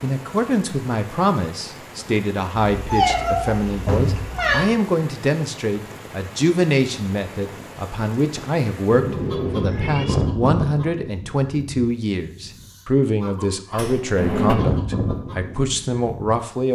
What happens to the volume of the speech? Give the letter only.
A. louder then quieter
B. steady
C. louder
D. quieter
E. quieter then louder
B.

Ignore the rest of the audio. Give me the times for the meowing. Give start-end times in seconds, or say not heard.
2.8-4.7, 8.9-10.2.